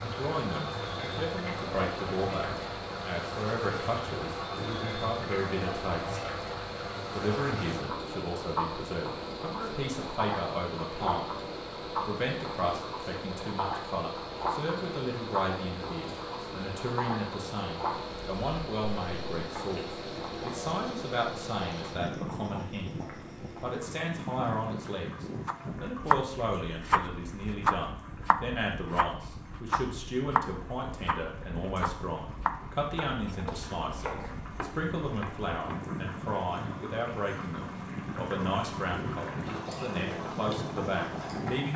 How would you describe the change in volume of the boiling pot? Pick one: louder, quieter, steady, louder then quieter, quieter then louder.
quieter then louder.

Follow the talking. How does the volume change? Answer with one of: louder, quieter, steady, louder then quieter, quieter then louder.
steady.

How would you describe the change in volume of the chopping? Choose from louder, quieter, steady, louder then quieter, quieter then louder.
quieter.